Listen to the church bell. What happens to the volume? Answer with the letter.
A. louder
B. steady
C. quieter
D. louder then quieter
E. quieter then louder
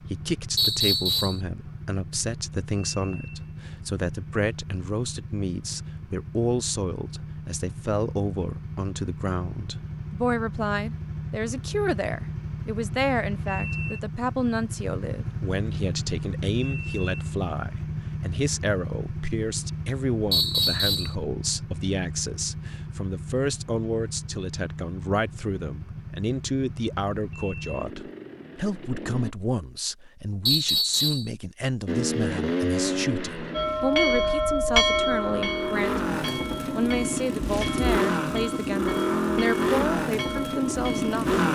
C.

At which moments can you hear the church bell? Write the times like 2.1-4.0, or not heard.
33.5-41.2.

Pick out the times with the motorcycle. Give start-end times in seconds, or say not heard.
0.0-29.4, 31.9-41.5.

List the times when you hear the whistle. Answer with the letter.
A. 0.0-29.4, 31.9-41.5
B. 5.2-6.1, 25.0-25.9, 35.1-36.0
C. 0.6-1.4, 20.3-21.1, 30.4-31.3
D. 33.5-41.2
C.